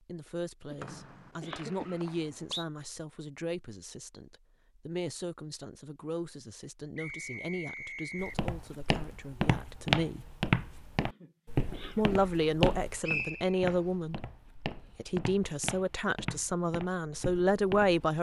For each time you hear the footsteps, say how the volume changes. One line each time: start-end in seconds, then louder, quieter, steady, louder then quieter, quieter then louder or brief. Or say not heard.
8.2-18.1 quieter.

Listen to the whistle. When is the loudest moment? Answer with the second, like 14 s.
13 s.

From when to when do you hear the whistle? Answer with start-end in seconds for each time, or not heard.
0.8-2.6, 7.0-8.4, 13.0-13.6.